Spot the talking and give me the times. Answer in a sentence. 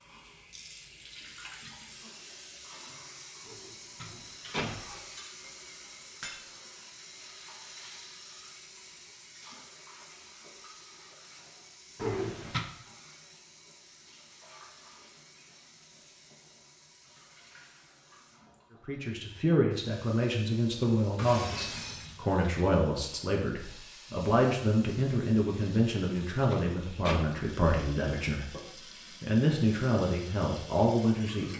You can hear the talking from 18.9 to 31.5 s.